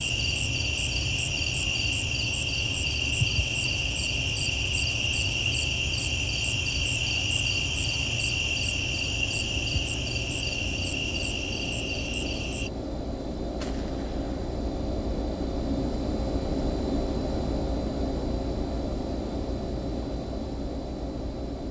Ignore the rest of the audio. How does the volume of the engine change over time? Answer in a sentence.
The loudness of the engine goes up.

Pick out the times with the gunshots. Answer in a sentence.
You can hear the gunshots from 13.6 to 14.3 s.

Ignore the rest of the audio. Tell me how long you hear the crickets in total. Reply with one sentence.
The crickets can be heard for 13 seconds in total.